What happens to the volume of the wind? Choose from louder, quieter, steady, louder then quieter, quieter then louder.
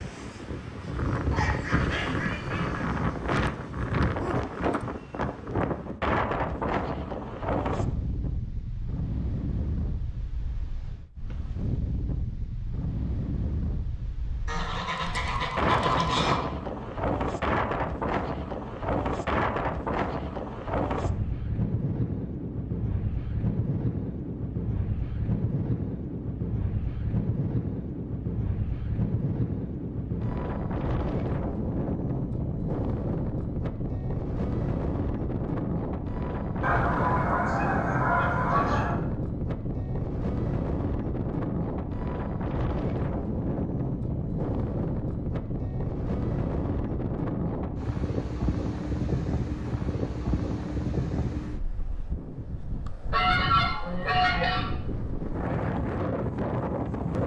steady.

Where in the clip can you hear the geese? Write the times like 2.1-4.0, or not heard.
1.3-2.9, 14.4-16.4, 36.6-39.0, 53.1-54.7.